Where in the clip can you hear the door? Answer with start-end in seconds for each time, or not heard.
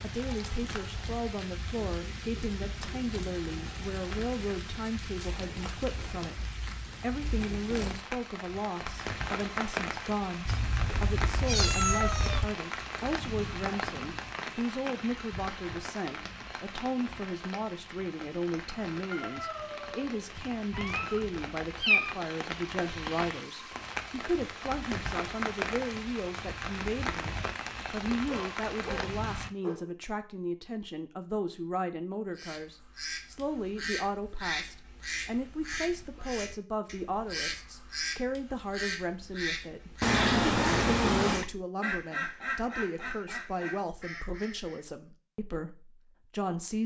not heard.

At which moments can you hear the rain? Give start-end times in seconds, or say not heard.
0.0-29.5.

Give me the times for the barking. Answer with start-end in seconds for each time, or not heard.
19.1-20.2, 28.2-29.9.